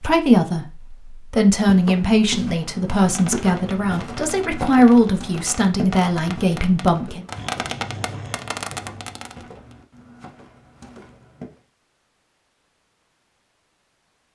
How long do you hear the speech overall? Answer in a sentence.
The speech can be heard for 7 seconds in total.